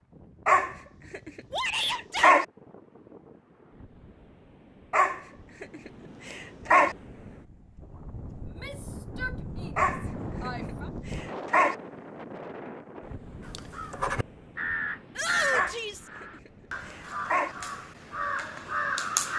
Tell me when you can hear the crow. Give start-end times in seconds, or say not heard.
13.4-19.3.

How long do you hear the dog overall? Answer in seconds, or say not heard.
8 s.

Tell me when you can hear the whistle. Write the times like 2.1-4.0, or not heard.
not heard.